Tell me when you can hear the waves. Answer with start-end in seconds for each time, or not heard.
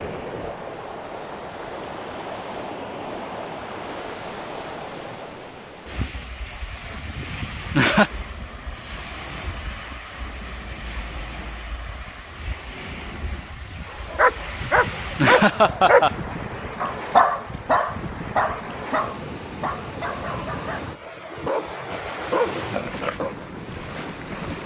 0.0-24.6.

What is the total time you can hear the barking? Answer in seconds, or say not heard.
9 s.